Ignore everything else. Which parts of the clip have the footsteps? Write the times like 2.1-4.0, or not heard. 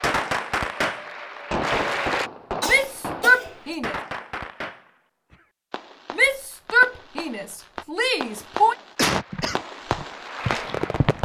9.3-11.2.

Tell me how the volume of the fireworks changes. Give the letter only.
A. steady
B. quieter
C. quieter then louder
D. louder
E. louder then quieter
C.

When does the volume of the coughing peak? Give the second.
9 s.